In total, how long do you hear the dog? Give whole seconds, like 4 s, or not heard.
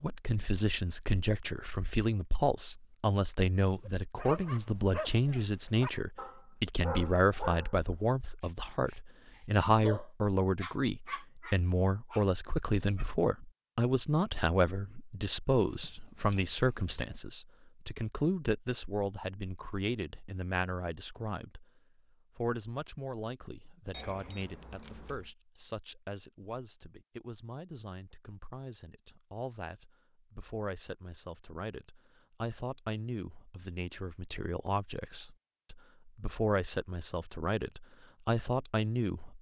9 s.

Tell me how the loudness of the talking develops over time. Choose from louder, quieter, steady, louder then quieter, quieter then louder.
quieter then louder.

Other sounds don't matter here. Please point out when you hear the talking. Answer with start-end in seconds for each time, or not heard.
0.0-21.6, 22.4-39.3.